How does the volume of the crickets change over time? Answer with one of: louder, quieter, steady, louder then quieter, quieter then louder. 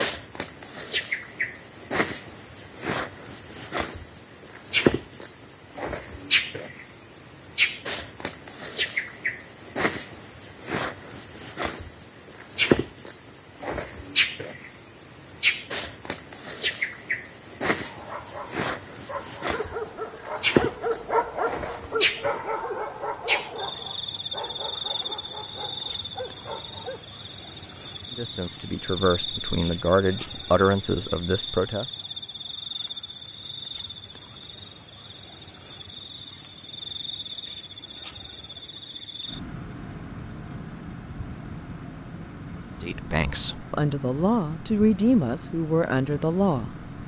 quieter.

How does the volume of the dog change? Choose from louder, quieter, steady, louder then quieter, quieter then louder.
louder then quieter.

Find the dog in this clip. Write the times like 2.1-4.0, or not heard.
17.8-27.1.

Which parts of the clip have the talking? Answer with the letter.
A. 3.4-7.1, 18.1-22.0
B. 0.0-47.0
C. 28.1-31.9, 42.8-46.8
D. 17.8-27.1
C.